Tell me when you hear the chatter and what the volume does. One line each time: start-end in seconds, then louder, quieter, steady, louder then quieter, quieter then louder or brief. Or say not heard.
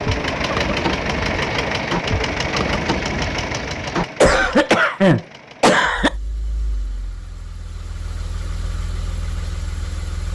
not heard.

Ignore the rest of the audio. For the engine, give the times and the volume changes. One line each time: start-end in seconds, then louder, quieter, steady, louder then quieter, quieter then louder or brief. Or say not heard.
0.0-10.3 quieter then louder.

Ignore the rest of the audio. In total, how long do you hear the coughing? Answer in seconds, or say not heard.
2 s.